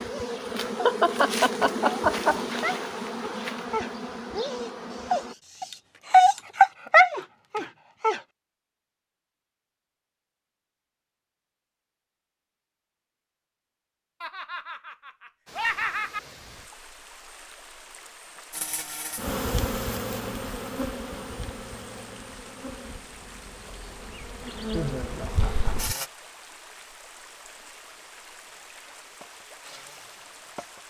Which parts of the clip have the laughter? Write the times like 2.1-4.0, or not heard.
0.5-2.5, 14.2-16.2, 24.7-26.1.